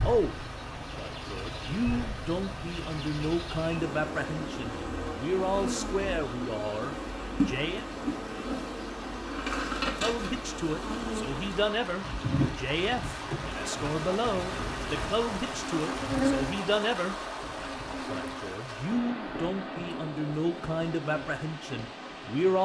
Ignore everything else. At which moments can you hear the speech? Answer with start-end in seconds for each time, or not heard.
0.0-7.8, 10.0-22.6.